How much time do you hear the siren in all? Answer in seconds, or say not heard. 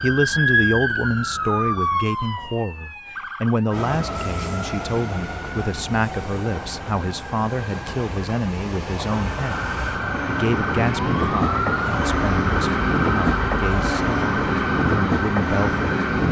11 s.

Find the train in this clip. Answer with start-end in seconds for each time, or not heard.
3.7-16.2.